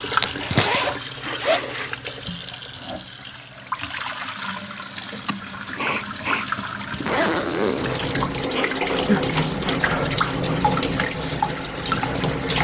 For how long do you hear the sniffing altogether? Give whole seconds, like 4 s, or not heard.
5 s.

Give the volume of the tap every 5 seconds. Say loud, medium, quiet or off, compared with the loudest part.
medium, loud, loud.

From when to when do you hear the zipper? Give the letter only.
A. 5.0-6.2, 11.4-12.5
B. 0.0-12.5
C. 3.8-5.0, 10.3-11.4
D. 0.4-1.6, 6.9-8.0
D.